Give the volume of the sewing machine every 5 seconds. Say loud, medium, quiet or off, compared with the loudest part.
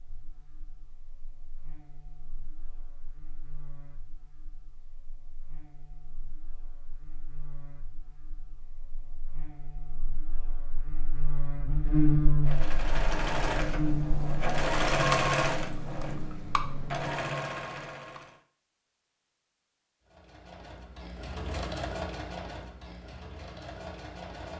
off, off, loud, loud, medium.